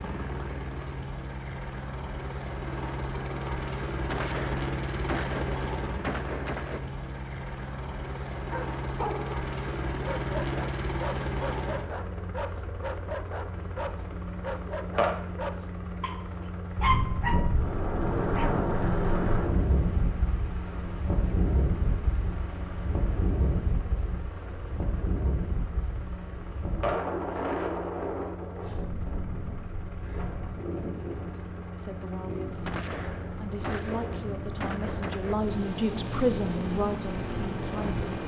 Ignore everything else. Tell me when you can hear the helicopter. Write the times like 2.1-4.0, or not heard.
0.0-38.2.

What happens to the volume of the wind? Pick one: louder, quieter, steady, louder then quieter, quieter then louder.
quieter.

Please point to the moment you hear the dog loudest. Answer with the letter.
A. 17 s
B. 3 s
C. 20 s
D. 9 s
A.